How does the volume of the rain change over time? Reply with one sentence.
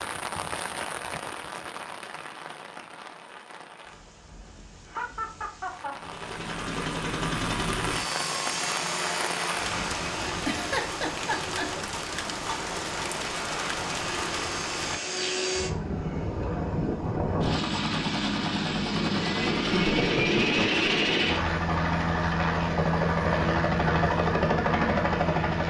The loudness of the rain goes down, then up.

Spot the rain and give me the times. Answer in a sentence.
The rain can be heard from 0.0 to 15.0 s.